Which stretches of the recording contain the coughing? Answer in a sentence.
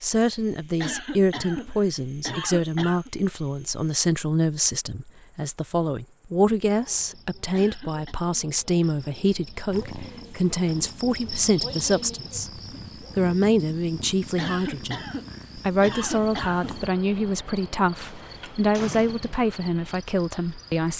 You can hear the coughing from 0.8 to 3.1 s, from 7.5 to 8.2 s and from 14.3 to 16.8 s.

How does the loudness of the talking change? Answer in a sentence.
The loudness of the talking stays about the same.